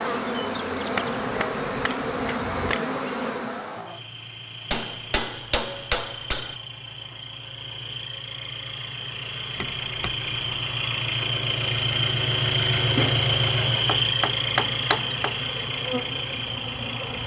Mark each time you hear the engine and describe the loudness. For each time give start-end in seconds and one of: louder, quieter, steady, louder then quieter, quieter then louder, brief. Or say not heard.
0.0-17.2 louder.